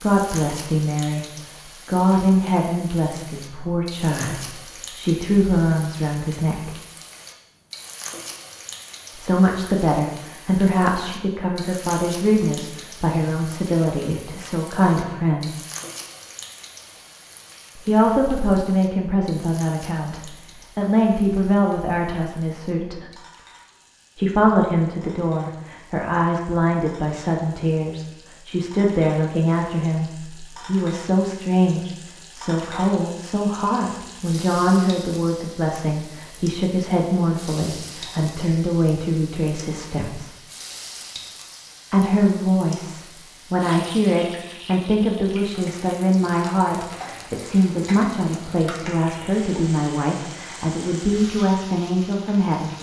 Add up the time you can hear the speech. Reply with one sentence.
You can hear the speech for 45 seconds altogether.